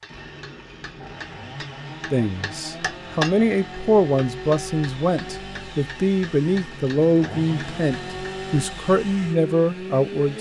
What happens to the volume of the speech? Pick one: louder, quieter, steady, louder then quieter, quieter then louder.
steady.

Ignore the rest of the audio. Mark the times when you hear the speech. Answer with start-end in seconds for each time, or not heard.
2.1-10.3.